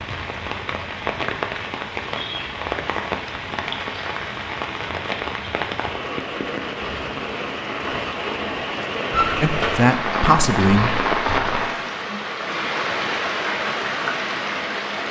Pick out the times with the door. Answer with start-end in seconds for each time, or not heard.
9.1-9.8.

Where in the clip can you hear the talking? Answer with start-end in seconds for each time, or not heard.
9.4-11.1.